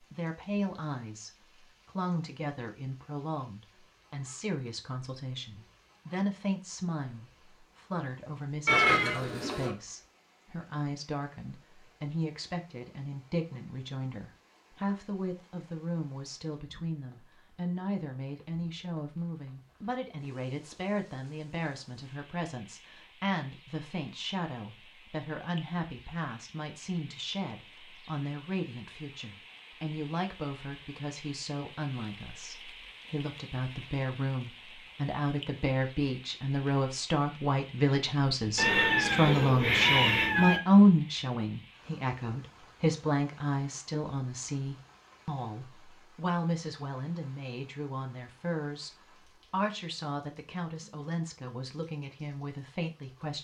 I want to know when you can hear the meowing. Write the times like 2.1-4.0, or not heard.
8.7-9.7, 38.5-40.6.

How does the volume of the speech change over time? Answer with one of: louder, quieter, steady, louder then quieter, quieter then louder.
louder then quieter.